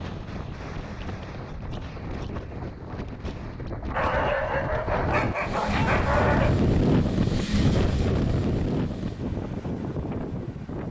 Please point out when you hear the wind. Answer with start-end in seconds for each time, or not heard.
0.0-10.8.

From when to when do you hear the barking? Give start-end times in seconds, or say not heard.
3.9-6.5.